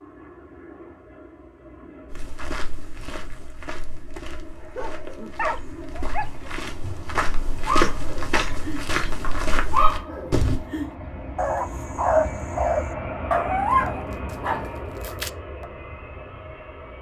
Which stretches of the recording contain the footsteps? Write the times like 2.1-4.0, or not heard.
2.1-10.7.